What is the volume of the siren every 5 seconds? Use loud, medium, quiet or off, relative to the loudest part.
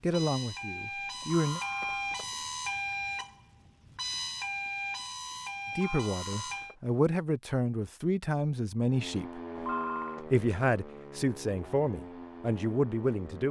loud, loud, medium.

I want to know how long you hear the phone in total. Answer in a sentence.
The phone can be heard for 3 seconds in total.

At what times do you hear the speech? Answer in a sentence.
You can hear the speech from 0.0 to 1.6 s, from 5.8 to 9.4 s and from 10.3 to 13.4 s.